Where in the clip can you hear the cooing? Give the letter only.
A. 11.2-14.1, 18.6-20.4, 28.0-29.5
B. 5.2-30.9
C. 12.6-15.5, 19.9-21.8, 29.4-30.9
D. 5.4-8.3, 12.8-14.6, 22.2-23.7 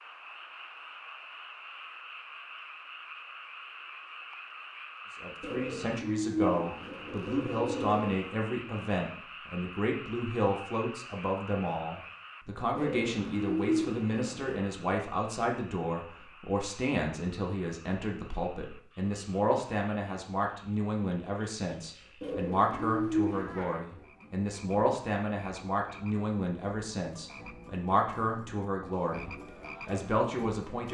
D.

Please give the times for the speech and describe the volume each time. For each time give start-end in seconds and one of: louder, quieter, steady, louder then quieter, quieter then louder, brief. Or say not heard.
5.2-30.9 steady.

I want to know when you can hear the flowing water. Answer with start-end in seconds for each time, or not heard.
not heard.